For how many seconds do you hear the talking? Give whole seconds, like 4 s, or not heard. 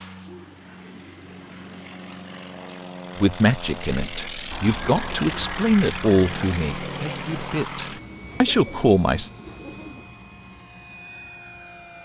6 s.